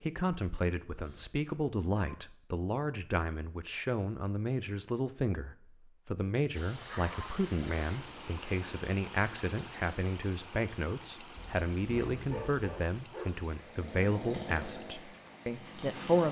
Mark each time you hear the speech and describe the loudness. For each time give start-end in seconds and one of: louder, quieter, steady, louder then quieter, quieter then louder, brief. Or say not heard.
0.0-16.2 steady.